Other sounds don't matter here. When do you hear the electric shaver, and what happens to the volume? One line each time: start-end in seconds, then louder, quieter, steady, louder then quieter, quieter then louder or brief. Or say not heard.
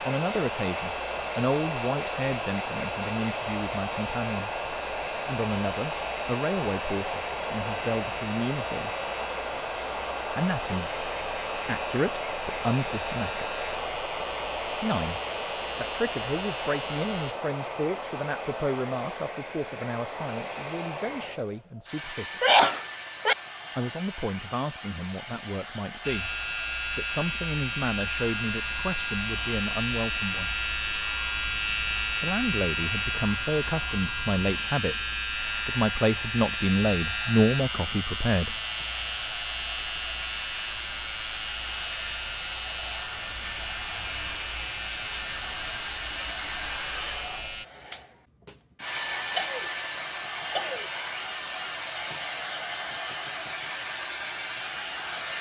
0.0-17.4 steady
26.0-47.6 quieter.